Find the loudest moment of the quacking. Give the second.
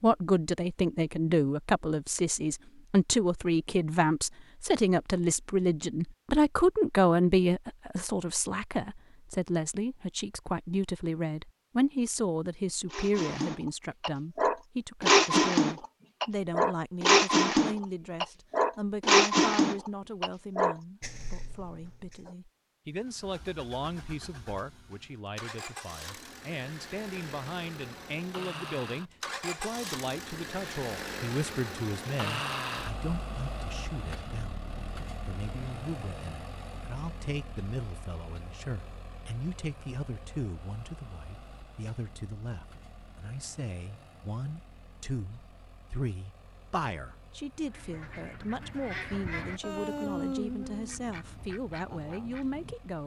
50 s.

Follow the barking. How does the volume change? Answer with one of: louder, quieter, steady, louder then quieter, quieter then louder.
louder then quieter.